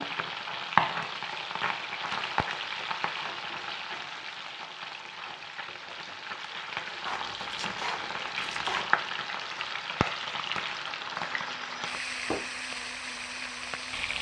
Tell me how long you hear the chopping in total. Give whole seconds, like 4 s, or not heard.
2 s.